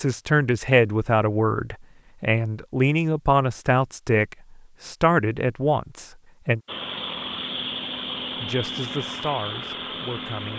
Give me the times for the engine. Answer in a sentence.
You can hear the engine from 6.7 to 10.5 s.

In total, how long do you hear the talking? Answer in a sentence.
The talking can be heard for 9 seconds in total.